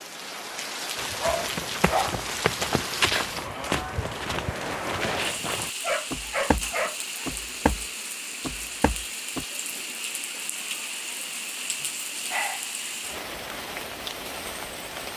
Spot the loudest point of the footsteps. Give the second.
3 s.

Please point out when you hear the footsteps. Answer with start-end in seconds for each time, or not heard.
0.9-9.4.